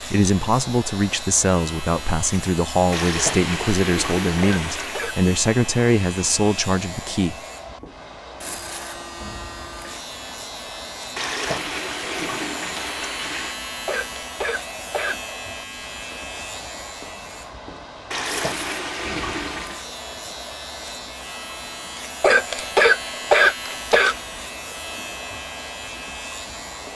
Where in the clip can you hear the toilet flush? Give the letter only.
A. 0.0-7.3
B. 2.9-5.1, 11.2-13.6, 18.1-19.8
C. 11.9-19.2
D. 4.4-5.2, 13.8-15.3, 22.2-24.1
B.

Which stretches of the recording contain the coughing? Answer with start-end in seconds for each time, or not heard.
4.4-5.2, 13.8-15.3, 22.2-24.1.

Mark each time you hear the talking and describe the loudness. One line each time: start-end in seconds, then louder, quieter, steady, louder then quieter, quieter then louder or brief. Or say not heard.
0.0-7.3 steady.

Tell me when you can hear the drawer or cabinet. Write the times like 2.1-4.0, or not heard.
not heard.